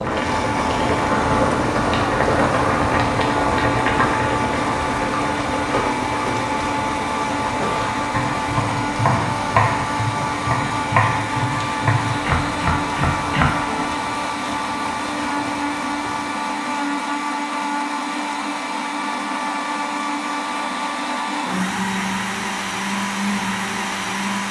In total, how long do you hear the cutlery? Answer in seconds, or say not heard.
not heard.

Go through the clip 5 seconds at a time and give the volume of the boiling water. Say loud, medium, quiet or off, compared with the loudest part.
loud, medium, quiet, quiet, off.